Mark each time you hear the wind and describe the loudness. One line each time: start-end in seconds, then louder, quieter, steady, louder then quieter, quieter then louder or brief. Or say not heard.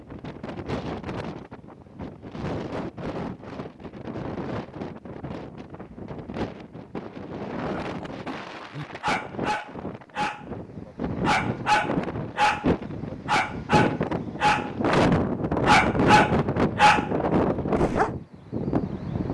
0.0-19.3 louder.